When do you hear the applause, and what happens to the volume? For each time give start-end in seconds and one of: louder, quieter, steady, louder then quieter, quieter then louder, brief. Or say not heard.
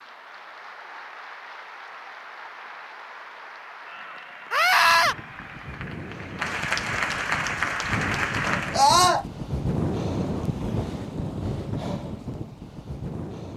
0.0-8.8 louder.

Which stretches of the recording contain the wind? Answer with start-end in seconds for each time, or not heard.
4.8-13.5.